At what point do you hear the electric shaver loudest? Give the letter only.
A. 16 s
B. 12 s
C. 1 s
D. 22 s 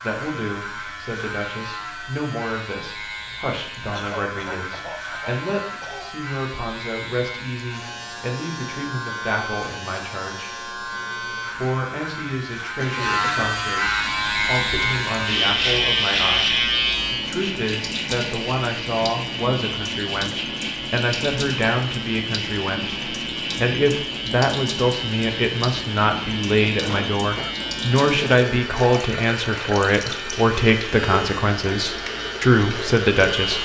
A.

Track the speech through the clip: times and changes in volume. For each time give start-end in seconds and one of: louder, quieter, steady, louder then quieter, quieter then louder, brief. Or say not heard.
0.0-10.7 steady
11.5-33.6 louder.